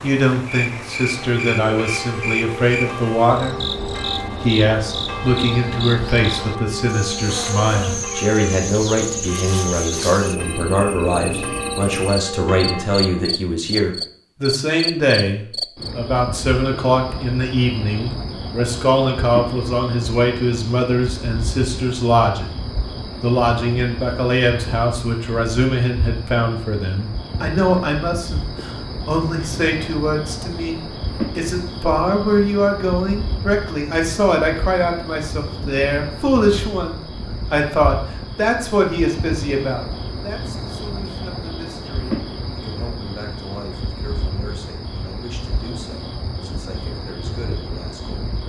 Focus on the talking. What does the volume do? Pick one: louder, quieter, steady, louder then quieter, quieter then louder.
quieter.